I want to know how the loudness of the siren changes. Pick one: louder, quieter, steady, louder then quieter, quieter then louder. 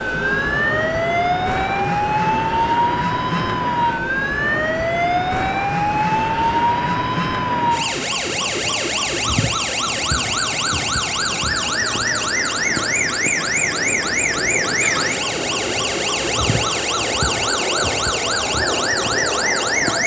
steady.